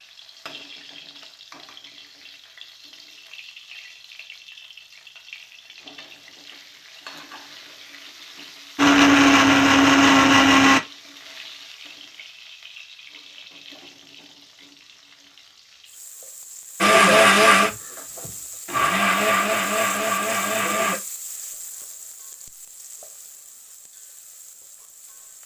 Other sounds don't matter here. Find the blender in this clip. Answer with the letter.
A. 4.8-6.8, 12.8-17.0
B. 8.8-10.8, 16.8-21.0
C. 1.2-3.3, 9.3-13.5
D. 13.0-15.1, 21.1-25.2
B.